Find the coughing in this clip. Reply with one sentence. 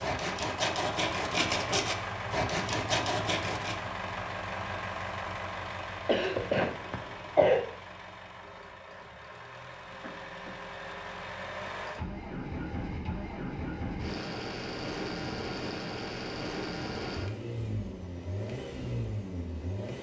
You can hear the coughing from 6.0 to 7.6 s and from 10.0 to 10.6 s.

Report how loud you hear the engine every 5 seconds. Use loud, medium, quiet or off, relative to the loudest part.
loud, medium, loud, loud.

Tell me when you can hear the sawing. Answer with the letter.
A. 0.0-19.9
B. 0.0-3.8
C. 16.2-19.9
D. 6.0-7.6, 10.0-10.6
B.